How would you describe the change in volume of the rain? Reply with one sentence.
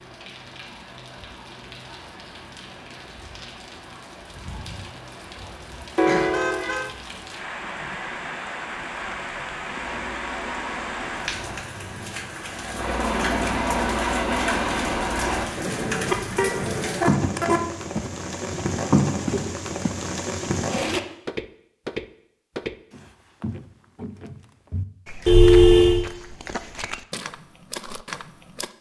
The volume of the rain goes up.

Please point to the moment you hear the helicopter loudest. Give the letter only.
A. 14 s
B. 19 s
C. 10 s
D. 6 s
A.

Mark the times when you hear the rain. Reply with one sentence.
The rain can be heard from 0.0 to 21.0 s.